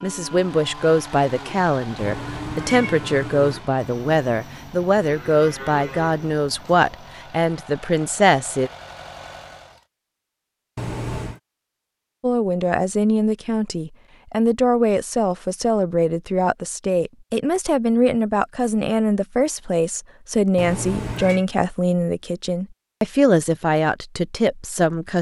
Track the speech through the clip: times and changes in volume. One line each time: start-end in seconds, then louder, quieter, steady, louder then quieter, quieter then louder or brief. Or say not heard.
0.0-8.7 steady
12.2-25.1 steady.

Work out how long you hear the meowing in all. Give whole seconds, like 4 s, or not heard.
3 s.